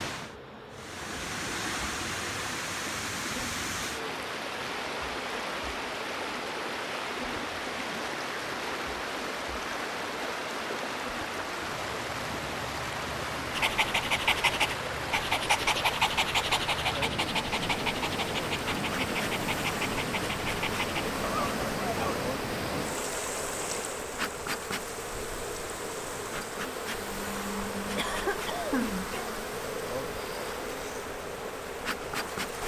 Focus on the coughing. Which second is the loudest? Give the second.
29 s.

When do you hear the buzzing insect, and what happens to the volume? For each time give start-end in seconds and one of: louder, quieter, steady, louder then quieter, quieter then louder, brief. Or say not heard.
0.1-32.6 louder.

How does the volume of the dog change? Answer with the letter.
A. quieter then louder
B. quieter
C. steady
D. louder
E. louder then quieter
B.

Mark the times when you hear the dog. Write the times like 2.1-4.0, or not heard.
13.5-22.2.